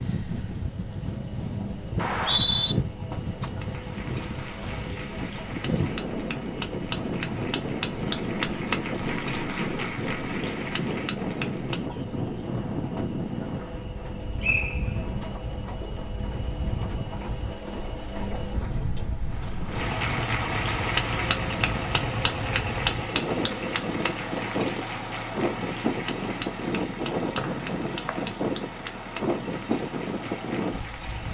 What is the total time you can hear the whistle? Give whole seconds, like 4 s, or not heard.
2 s.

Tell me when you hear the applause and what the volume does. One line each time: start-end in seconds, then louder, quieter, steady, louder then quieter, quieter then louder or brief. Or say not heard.
3.5-11.9 louder
19.7-31.2 quieter.